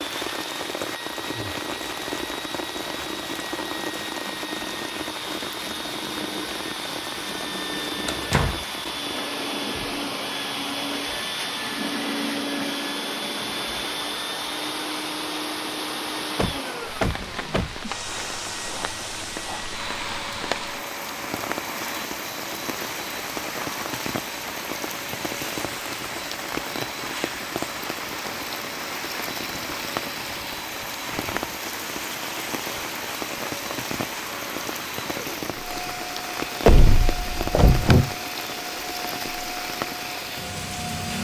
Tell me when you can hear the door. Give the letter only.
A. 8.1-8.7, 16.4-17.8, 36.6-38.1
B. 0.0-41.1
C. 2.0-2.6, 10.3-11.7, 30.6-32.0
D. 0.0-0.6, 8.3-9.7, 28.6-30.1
A.